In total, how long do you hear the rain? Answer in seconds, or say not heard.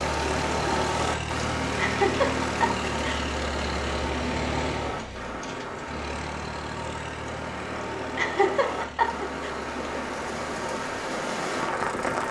12 s.